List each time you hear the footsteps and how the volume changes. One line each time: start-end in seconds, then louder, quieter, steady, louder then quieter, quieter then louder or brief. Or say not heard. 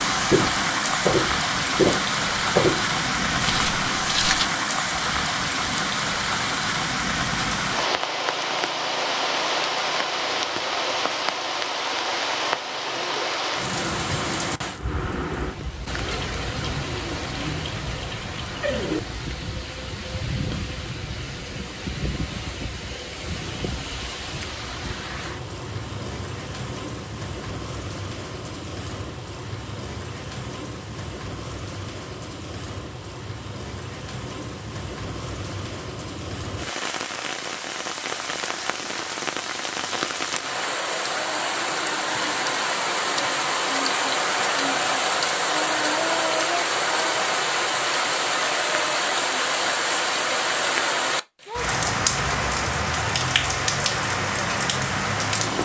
0.1-4.5 quieter.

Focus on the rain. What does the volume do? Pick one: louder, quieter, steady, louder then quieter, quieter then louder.
quieter then louder.